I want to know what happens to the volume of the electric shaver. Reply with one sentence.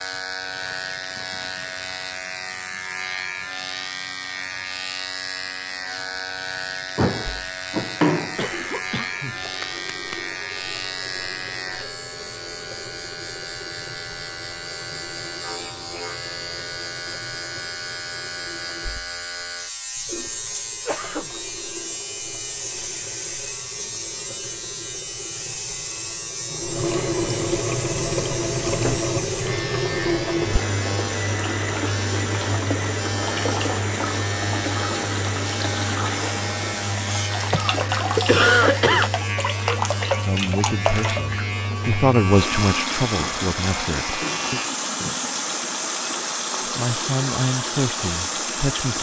The loudness of the electric shaver stays about the same.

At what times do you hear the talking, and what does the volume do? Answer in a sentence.
The talking can be heard from 40.2 to 44.6 s, getting louder then quieter; and briefly from 46.6 to 48.9 s.